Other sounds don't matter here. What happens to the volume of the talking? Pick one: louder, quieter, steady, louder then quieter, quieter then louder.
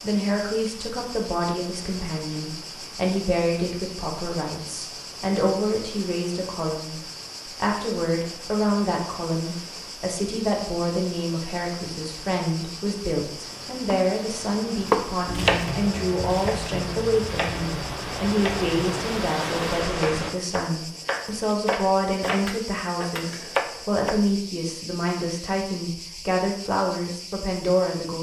steady.